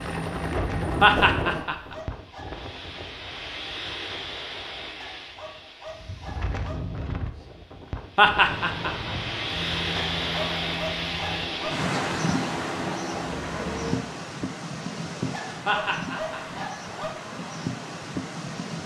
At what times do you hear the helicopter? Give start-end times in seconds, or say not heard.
0.0-1.6, 8.4-14.1.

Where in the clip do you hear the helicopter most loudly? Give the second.
1 s.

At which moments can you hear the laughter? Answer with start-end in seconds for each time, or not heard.
1.0-1.9, 8.2-9.1, 15.7-16.6.